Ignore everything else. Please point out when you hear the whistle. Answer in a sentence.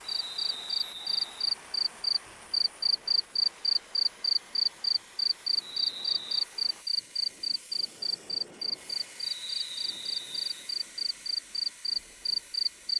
You can hear the whistle from 0.0 to 1.6 s, from 5.6 to 6.5 s and from 9.2 to 10.7 s.